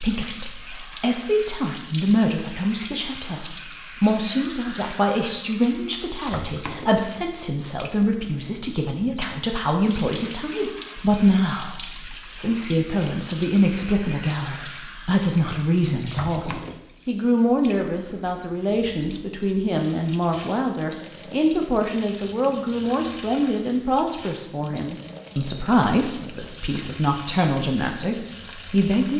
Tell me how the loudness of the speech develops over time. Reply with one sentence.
The volume of the speech stays about the same.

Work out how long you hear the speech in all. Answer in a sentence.
You can hear the speech for 29 seconds altogether.